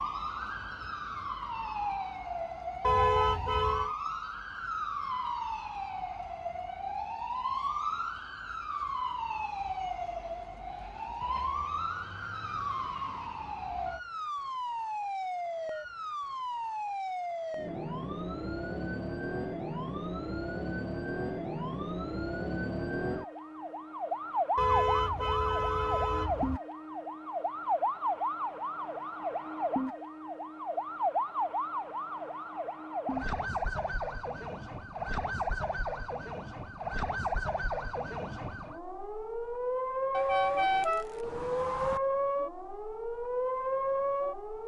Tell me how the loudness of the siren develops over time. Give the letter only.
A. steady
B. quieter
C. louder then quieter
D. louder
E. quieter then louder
A.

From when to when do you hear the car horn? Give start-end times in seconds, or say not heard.
2.8-3.9, 24.6-26.6, 40.1-42.0.